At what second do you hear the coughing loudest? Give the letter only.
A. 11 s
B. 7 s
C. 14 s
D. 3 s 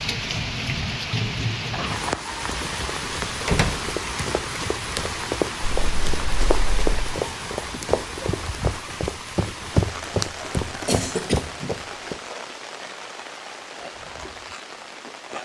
A.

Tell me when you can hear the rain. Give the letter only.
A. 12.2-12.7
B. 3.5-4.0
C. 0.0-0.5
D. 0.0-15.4
D.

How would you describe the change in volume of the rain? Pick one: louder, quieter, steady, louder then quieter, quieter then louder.
quieter.